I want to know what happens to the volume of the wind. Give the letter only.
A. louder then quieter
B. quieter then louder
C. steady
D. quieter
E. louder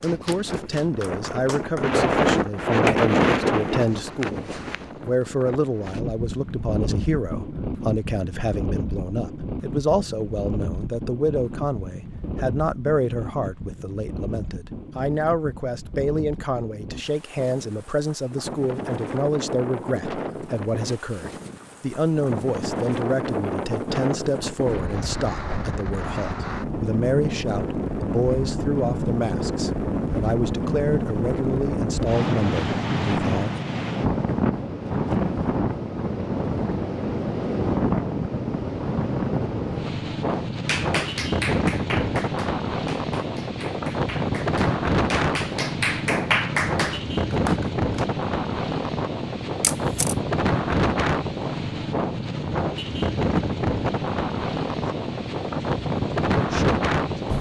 B.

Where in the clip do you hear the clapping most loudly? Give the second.
46 s.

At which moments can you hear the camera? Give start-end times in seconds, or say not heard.
49.6-50.1.